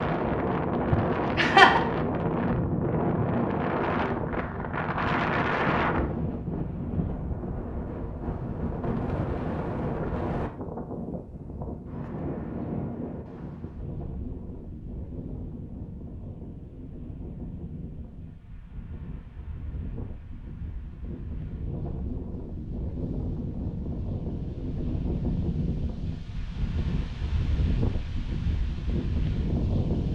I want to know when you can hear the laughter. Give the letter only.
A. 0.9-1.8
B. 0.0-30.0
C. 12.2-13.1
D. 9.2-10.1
A.